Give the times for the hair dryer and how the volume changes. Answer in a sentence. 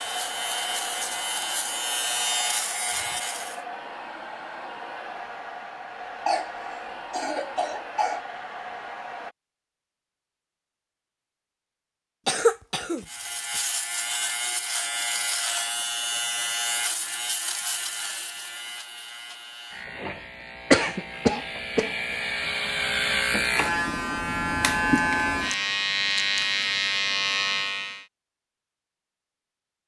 You can hear the hair dryer from 0.0 to 9.3 s, at a steady volume.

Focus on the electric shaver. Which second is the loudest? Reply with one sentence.
The volume of the electric shaver peaks at 25 seconds.